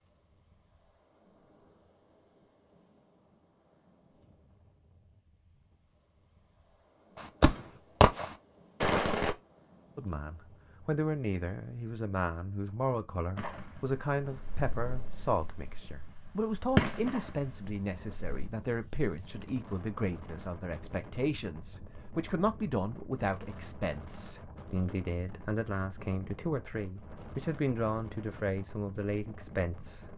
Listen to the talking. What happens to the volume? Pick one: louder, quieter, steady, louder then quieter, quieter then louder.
steady.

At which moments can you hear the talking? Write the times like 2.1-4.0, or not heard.
9.9-30.1.